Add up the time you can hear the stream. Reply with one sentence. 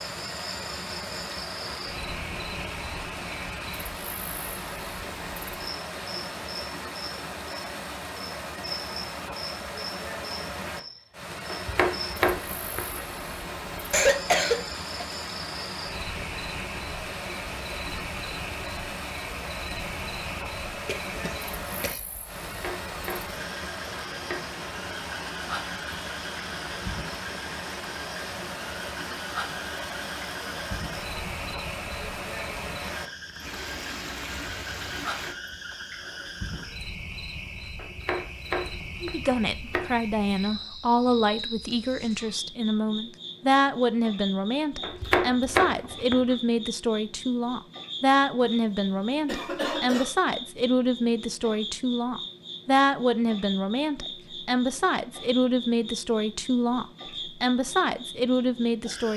You can hear the stream for 35 seconds altogether.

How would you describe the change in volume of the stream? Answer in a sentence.
The volume of the stream stays about the same.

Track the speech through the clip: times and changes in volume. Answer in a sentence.
The speech can be heard from 39.0 to 59.1 s, at a steady volume.